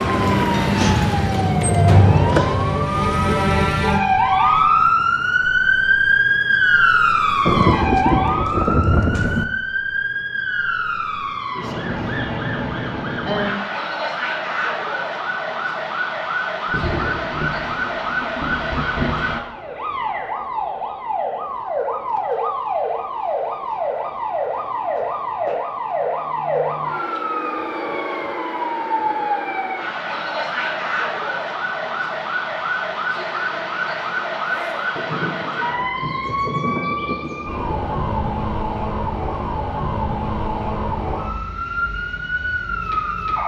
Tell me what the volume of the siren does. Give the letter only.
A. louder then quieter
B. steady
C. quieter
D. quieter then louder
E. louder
C.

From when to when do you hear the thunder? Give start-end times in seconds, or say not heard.
7.5-9.4, 16.6-19.4, 35.0-37.9.